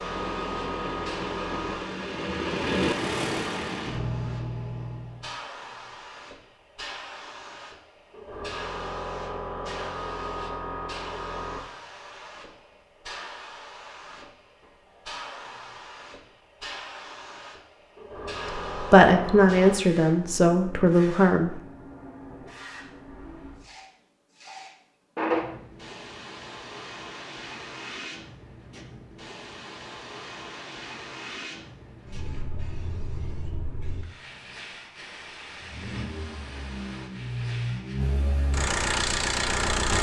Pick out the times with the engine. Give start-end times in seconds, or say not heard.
0.0-5.3, 35.5-39.9.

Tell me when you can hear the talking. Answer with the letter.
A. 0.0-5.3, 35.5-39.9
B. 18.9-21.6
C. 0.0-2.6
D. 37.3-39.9
B.